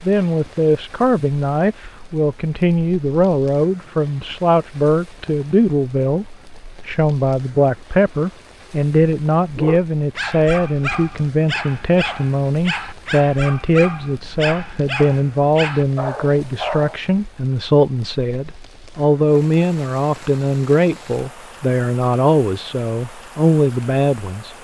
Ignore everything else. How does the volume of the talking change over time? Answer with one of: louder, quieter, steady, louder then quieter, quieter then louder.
steady.